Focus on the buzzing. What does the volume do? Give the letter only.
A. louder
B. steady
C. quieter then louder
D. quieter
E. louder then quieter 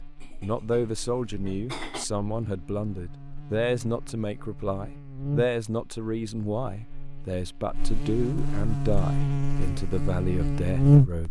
A.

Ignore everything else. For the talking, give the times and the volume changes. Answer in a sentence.
The talking can be heard from 0.4 to 11.2 s, at a steady volume.